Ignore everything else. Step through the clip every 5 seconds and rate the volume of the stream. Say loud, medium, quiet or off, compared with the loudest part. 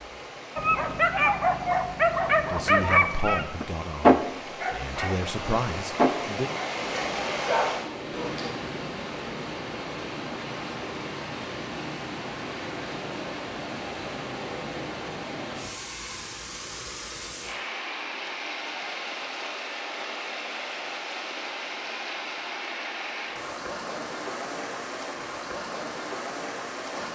medium, loud, loud, loud, loud, loud.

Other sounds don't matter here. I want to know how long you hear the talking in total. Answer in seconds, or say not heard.
4 s.